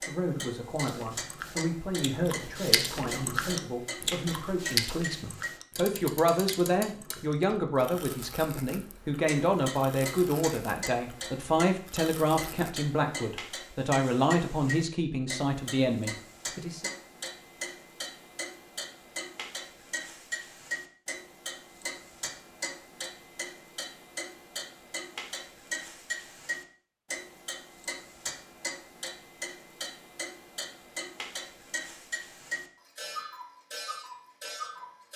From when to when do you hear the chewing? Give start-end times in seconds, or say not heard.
0.8-12.8.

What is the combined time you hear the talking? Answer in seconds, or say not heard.
17 s.